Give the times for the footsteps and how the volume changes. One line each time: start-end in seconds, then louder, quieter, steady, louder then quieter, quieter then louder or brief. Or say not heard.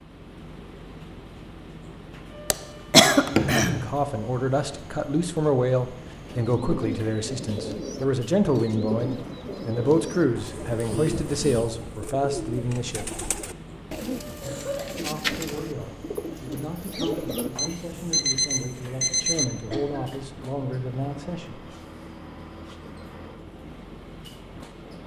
not heard.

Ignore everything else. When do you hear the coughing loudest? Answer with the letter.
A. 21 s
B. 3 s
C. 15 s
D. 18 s
B.